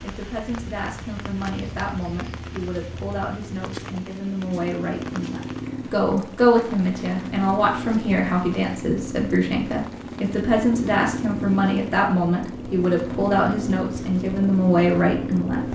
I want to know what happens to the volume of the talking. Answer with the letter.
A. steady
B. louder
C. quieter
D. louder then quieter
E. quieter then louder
B.